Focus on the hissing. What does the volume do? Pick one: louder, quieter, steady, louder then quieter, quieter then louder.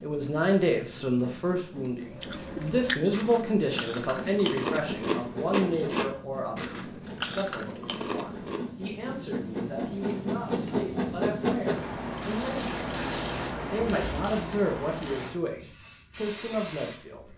louder then quieter.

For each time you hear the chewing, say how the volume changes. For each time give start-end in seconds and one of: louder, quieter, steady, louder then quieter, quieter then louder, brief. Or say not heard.
2.1-8.7 steady.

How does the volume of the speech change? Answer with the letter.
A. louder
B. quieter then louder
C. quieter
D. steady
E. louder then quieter
B.